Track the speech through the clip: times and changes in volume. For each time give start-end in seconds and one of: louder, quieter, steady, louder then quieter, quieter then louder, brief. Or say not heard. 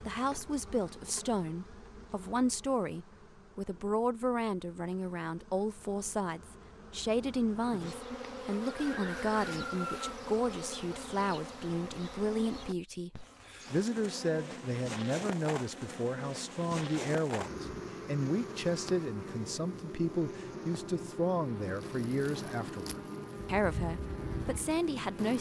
0.1-25.3 steady.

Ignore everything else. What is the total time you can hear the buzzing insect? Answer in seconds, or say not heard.
25 s.